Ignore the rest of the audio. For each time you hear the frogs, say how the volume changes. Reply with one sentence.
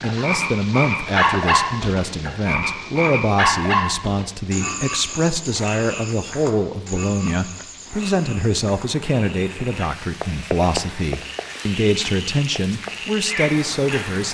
You can hear the frogs from 0.0 to 14.3 s, getting quieter then louder.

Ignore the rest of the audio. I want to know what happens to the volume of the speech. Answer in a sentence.
The loudness of the speech stays about the same.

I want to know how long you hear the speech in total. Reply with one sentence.
You can hear the speech for 14 seconds altogether.